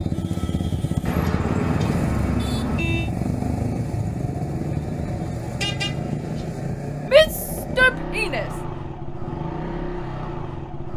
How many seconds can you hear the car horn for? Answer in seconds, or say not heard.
3 s.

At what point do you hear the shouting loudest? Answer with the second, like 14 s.
7 s.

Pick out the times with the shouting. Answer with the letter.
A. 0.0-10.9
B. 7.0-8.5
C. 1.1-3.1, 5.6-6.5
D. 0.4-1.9
B.